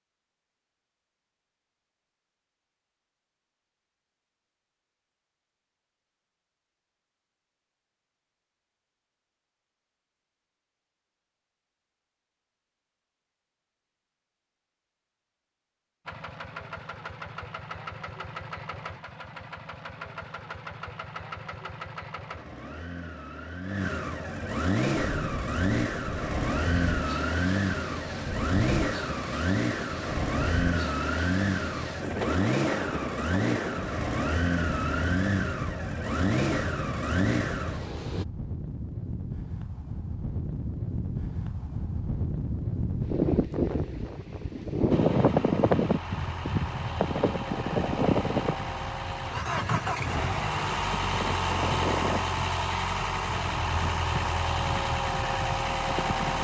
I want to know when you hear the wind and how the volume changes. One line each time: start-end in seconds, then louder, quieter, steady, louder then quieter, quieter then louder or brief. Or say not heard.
24.9-56.3 louder then quieter.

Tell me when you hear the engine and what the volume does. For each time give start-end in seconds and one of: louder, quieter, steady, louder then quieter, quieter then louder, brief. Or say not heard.
16.1-38.2 louder
44.9-56.3 louder.